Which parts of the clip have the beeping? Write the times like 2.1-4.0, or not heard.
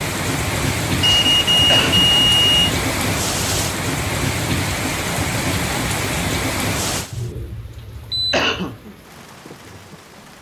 1.0-2.7, 7.1-8.5.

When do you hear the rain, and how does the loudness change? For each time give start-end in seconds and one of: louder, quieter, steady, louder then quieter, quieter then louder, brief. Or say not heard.
0.0-10.3 quieter.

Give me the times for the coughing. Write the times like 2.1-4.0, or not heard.
1.6-2.1, 8.3-8.8.